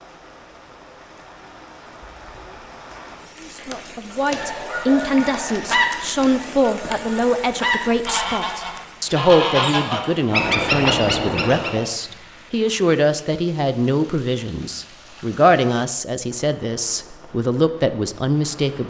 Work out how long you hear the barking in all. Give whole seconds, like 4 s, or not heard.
not heard.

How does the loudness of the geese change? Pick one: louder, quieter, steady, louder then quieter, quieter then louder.
quieter then louder.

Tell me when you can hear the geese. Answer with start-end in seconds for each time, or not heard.
4.3-11.8.